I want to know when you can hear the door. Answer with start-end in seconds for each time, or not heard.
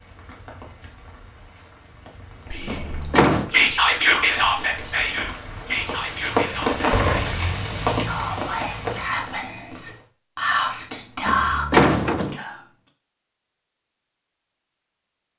2.6-3.5, 6.6-7.5, 11.2-12.4.